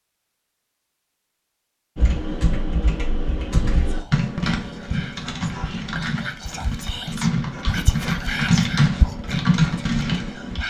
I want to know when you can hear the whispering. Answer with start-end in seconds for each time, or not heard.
3.8-10.6.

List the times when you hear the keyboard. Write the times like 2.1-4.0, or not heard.
1.9-10.6.